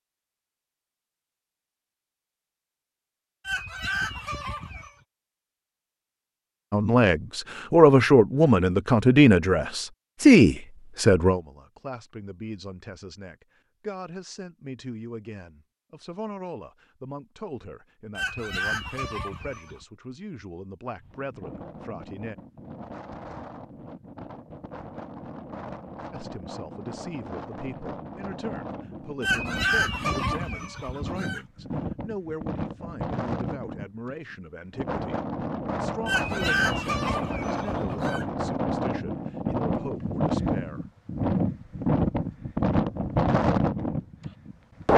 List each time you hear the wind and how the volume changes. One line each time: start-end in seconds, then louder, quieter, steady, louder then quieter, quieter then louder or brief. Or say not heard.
21.0-44.9 louder.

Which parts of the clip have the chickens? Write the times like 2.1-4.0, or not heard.
3.5-4.9, 18.1-19.9, 29.2-31.4, 36.0-38.2.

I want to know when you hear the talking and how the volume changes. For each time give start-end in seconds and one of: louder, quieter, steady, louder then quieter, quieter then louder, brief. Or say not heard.
6.7-22.4 quieter
26.1-40.9 steady.